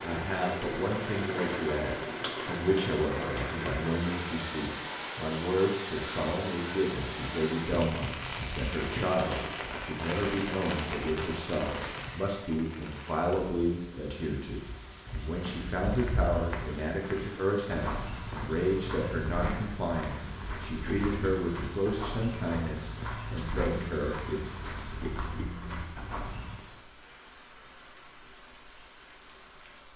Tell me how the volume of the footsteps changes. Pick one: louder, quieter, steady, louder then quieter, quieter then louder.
steady.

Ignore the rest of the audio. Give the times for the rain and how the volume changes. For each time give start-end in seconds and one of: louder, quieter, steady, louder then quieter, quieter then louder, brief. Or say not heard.
0.0-29.9 quieter.